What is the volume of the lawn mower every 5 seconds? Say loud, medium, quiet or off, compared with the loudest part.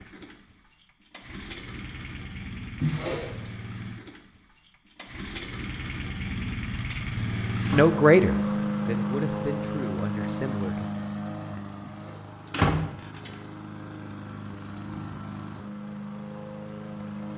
quiet, loud, medium, medium.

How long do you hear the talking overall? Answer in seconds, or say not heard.
3 s.